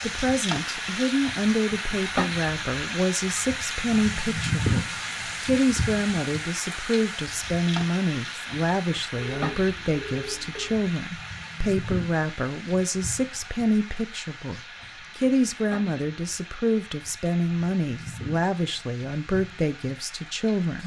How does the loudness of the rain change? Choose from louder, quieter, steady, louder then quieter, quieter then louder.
quieter.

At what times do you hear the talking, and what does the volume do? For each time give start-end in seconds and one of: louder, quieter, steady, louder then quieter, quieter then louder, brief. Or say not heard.
0.0-20.8 steady.